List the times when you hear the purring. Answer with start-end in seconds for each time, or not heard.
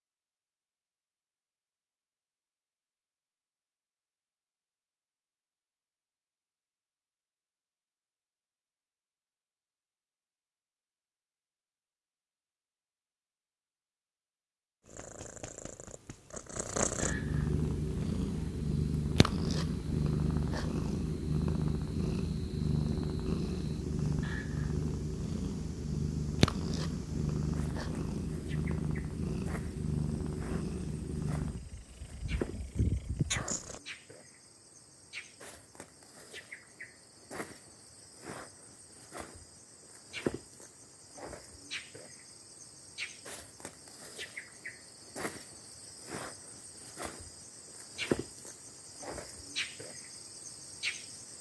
14.8-33.8.